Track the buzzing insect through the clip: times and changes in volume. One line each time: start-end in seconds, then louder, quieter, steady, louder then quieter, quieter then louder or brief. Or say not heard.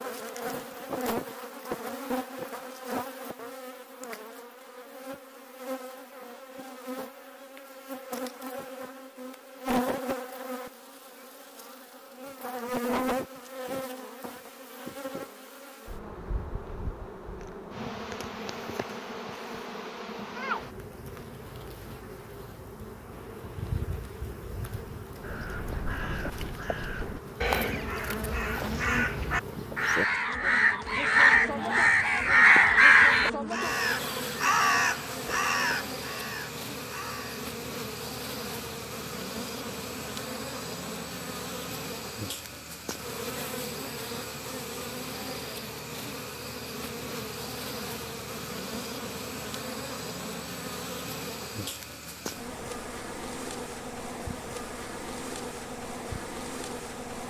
0.0-57.2 steady.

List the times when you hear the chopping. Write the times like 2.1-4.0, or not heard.
not heard.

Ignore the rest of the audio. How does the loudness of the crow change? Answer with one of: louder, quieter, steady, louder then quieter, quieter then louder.
louder then quieter.